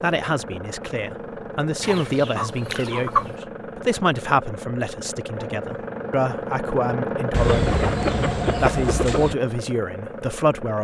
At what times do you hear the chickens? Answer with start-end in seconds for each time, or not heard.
1.8-3.4, 7.3-9.3.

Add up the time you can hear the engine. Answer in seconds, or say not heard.
11 s.